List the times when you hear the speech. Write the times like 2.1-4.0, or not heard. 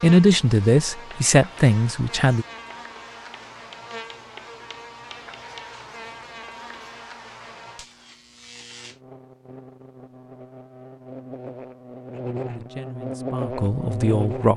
0.0-2.5, 12.4-14.5.